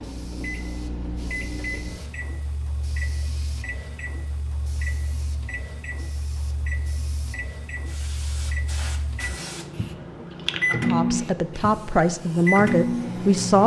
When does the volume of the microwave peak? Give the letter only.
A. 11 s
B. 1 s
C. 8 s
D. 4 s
A.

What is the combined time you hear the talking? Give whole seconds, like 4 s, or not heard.
3 s.